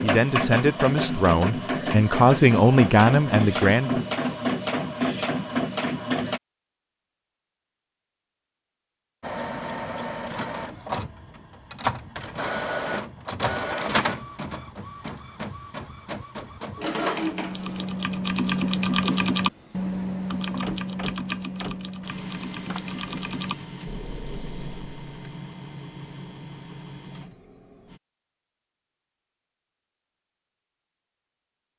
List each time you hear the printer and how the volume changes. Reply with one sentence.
The printer can be heard from 0.0 to 6.4 s, at a steady volume; and from 9.2 to 28.0 s, getting quieter.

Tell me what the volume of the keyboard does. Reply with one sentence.
The volume of the keyboard goes down.